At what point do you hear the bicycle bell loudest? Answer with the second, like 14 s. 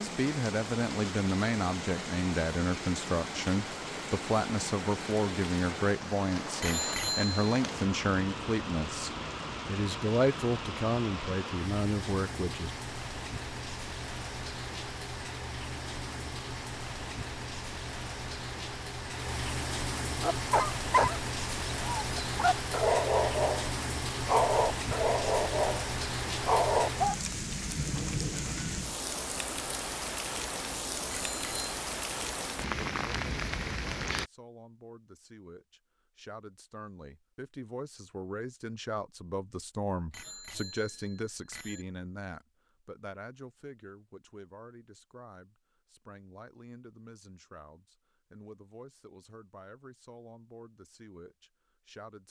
7 s.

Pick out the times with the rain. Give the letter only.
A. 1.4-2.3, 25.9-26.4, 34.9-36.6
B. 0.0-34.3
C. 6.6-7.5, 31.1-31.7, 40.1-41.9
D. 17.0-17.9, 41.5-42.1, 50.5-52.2
B.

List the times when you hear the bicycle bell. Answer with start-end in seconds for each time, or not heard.
6.6-7.5, 31.1-31.7, 40.1-41.9.